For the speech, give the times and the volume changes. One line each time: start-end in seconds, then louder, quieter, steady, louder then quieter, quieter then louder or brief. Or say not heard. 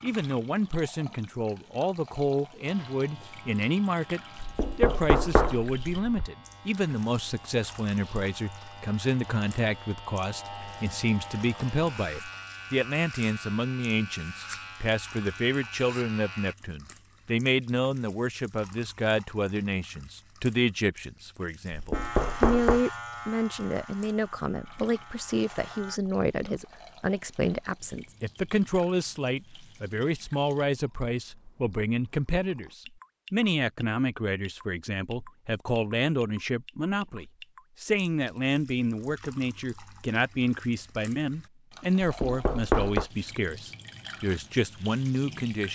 0.0-45.7 steady.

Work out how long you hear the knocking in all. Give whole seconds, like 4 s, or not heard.
4 s.